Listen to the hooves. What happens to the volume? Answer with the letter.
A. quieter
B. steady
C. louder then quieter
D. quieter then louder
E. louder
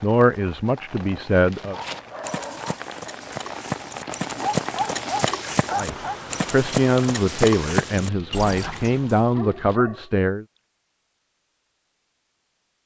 E.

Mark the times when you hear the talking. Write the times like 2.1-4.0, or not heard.
0.0-1.8, 5.8-10.4.